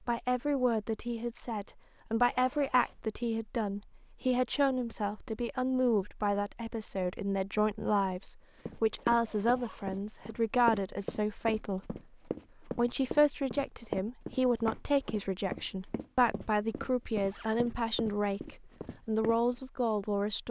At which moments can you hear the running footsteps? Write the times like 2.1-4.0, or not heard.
8.7-19.6.